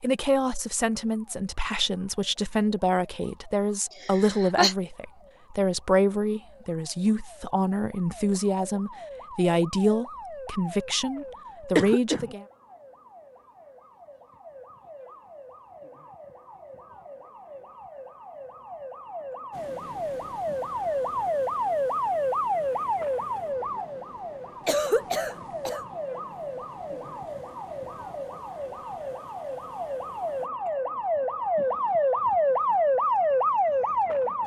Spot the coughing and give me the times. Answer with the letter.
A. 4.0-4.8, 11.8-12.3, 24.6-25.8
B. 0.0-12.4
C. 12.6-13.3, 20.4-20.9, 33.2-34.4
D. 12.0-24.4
A.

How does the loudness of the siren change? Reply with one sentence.
The volume of the siren goes up.